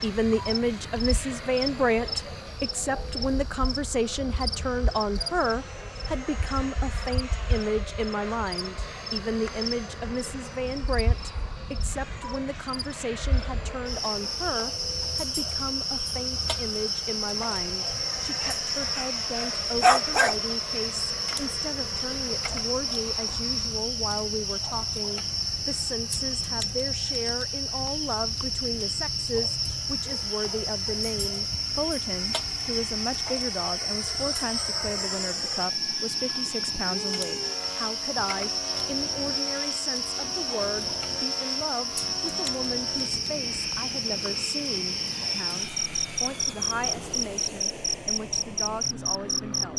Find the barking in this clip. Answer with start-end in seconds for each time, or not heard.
18.4-20.4.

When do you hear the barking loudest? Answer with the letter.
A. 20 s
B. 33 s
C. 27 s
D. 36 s
A.